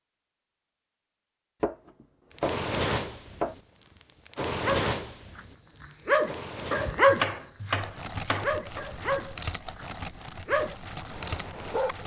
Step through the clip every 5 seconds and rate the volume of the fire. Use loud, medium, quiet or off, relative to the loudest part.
loud, medium, medium.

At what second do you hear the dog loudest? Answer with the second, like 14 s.
7 s.